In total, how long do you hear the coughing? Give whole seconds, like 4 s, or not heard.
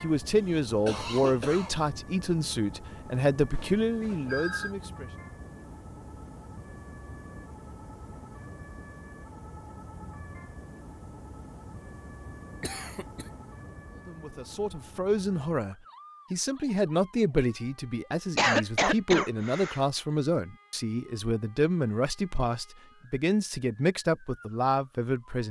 3 s.